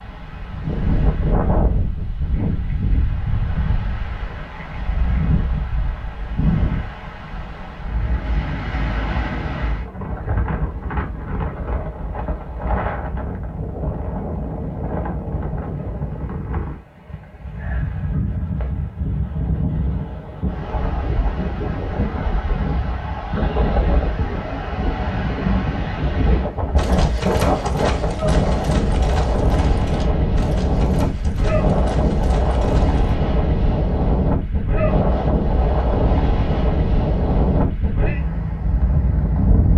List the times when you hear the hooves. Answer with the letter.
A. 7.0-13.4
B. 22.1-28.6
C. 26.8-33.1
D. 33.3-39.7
C.